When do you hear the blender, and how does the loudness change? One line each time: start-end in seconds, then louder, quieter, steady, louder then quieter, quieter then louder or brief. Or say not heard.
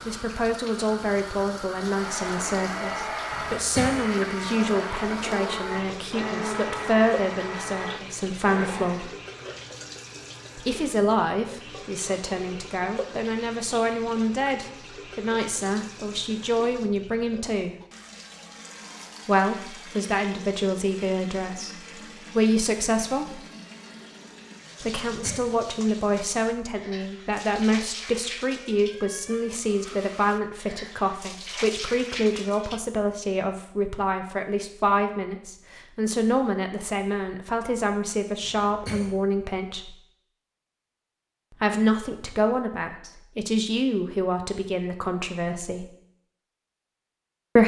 1.9-9.2 steady.